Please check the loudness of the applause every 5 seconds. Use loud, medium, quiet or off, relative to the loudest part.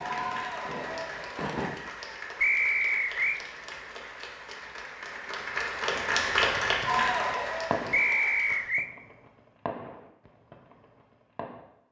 medium, loud, off.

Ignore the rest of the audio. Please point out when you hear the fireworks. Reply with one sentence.
The fireworks can be heard from 0.0 to 1.9 s and from 5.9 to 11.7 s.